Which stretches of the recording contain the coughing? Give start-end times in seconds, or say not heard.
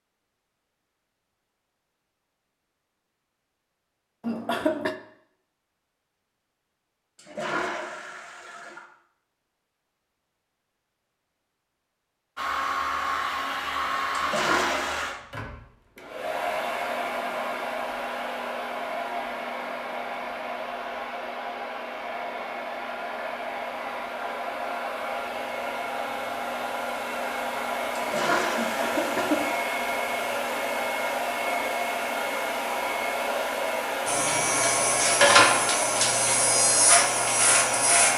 4.2-5.0, 28.6-29.6.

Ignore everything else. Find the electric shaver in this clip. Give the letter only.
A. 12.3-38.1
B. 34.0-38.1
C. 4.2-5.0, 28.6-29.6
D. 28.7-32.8
B.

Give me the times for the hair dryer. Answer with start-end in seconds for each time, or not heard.
12.3-38.1.